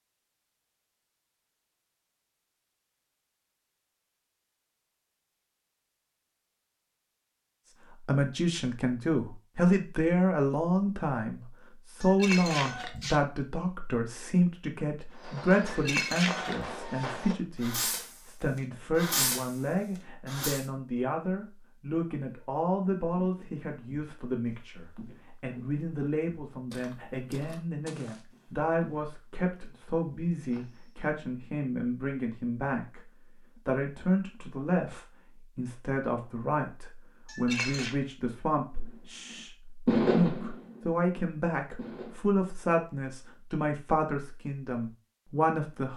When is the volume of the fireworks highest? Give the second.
40 s.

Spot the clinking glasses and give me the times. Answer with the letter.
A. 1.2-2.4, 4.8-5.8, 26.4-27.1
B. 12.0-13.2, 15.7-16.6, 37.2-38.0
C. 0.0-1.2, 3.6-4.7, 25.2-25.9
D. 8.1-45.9
B.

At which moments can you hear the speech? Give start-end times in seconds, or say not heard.
8.1-45.9.